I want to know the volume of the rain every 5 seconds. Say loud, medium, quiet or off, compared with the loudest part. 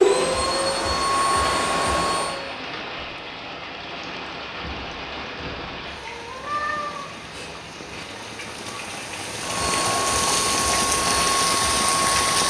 medium, medium, loud.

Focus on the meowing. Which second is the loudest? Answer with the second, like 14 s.
7 s.